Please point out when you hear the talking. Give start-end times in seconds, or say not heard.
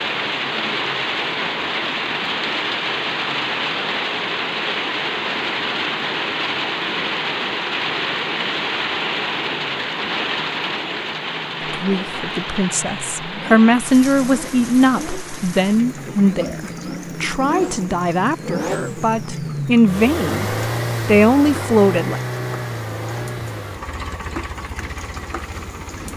11.7-22.2.